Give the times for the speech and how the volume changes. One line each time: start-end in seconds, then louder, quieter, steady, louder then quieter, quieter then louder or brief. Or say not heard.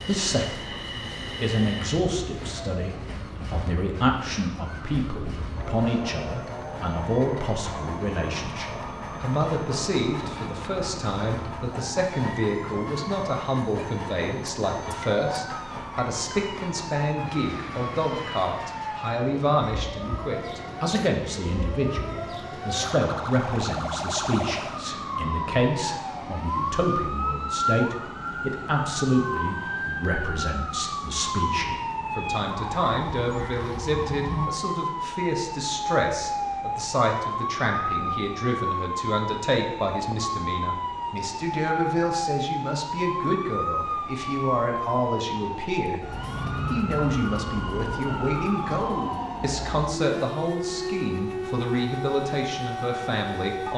0.0-46.0 steady
46.7-53.7 steady.